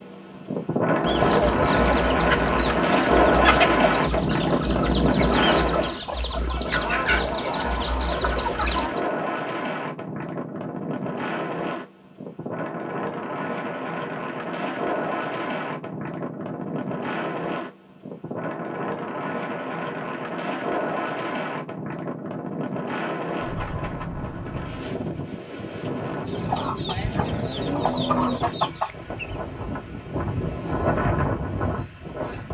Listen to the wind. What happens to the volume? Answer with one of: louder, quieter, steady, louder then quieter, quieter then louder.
quieter.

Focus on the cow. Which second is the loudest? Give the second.
28 s.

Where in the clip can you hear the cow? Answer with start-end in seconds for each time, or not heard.
26.4-28.4.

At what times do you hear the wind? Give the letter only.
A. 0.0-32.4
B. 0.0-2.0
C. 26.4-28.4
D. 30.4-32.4
A.